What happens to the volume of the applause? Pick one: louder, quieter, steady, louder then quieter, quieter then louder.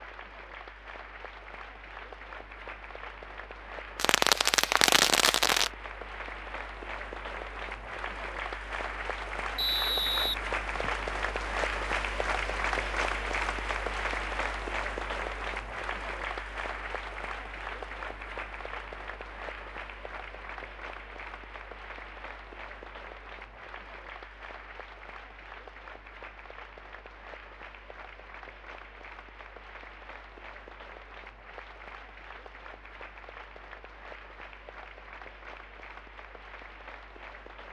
louder then quieter.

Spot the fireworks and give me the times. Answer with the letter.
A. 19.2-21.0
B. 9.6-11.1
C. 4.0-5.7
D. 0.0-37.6
C.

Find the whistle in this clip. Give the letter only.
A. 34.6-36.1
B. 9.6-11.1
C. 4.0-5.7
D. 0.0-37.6
B.